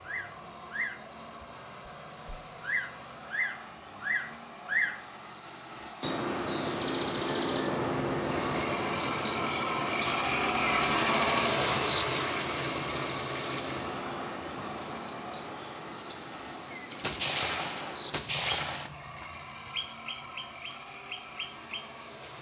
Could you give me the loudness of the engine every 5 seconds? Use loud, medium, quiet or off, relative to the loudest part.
quiet, medium, loud, quiet, quiet.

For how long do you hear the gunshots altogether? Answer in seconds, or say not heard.
2 s.